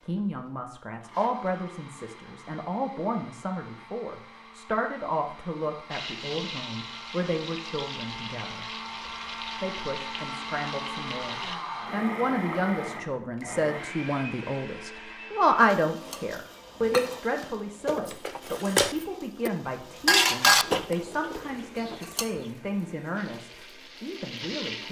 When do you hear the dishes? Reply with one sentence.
You can hear the dishes from 15.9 to 22.3 s.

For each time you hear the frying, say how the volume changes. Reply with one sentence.
You can hear the frying from 5.9 to 11.6 s, at a steady volume; and briefly from 23.1 to 24.8 s.